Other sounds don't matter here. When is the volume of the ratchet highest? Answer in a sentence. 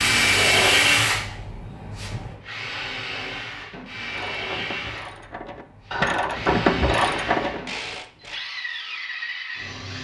The loudest moment of the ratchet is at 7 seconds.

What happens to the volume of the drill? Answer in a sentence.
The volume of the drill goes down.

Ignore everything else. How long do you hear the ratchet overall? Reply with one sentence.
The ratchet can be heard for 4 seconds in total.